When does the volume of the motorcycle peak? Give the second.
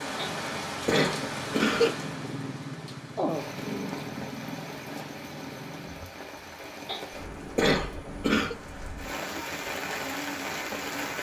4 s.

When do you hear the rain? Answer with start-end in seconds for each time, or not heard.
0.0-11.1.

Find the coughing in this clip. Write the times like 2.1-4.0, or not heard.
0.1-1.9, 6.8-8.6.